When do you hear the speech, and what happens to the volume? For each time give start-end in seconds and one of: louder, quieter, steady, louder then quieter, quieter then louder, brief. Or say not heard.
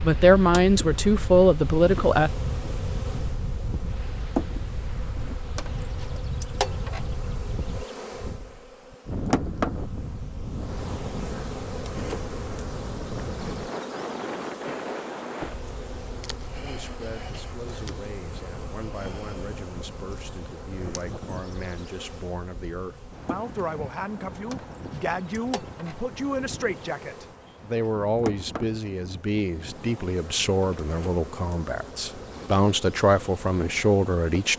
0.0-2.3 brief
16.6-34.5 louder.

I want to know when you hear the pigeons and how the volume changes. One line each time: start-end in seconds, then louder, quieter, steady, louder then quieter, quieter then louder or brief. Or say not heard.
not heard.